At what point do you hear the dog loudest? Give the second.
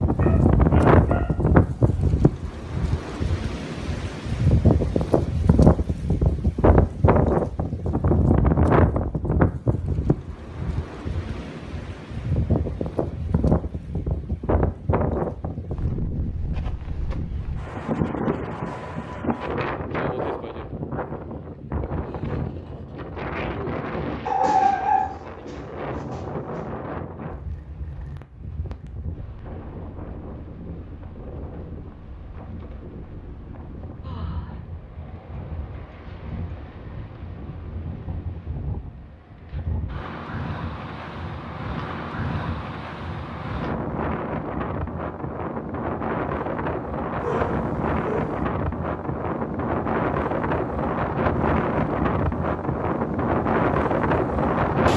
25 s.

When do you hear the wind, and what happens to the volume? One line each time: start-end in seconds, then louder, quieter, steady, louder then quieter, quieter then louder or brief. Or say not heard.
0.0-54.9 quieter then louder.